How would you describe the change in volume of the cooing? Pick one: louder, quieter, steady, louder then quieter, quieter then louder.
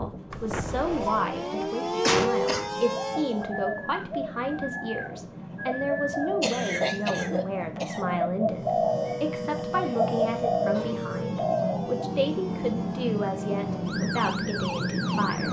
louder.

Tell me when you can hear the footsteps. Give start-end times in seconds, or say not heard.
not heard.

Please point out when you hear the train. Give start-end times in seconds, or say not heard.
0.0-15.4.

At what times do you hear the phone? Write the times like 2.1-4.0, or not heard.
0.3-1.3.